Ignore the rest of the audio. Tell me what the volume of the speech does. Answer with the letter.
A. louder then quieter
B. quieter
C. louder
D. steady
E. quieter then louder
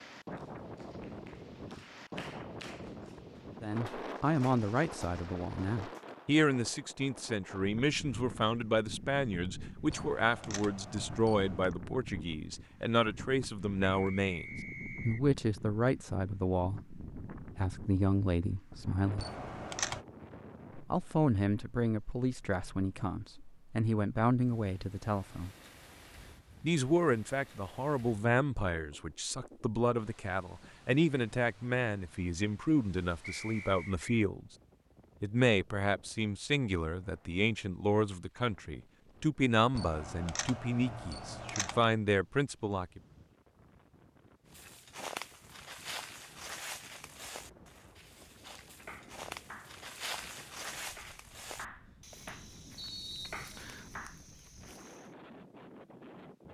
D.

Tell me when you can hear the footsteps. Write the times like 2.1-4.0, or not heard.
44.5-55.1.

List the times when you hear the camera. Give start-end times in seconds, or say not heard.
9.9-11.8, 19.1-20.1, 39.7-41.9.